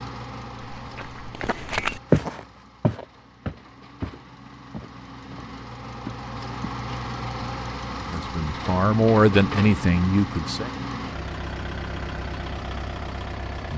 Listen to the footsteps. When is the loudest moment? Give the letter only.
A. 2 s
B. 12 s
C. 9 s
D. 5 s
A.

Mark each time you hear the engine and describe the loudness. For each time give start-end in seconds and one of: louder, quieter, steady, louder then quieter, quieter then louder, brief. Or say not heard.
0.0-13.7 louder.